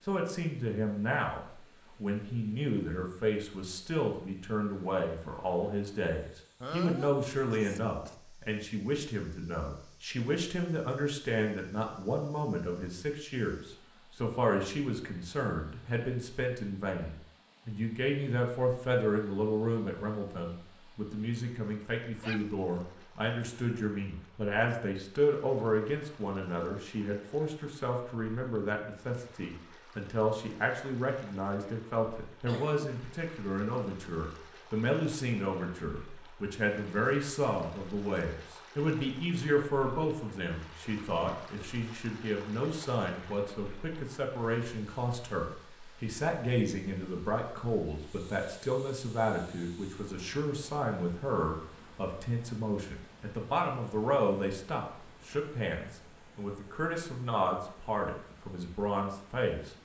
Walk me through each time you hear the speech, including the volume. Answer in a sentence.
The speech can be heard from 0.1 to 59.8 s, at a steady volume.